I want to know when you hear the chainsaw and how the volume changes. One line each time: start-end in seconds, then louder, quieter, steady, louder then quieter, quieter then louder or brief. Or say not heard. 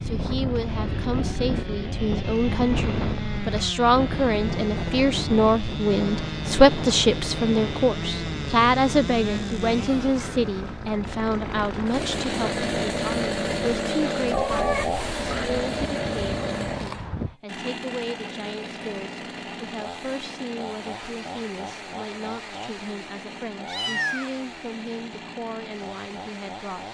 0.0-26.8 louder then quieter.